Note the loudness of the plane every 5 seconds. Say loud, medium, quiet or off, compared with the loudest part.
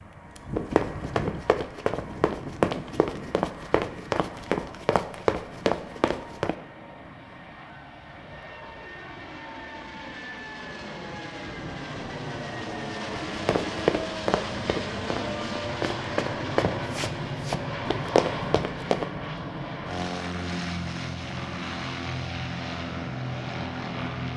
medium, medium, loud, loud, loud.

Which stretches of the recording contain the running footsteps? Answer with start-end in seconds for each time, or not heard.
0.6-6.5, 13.3-19.1.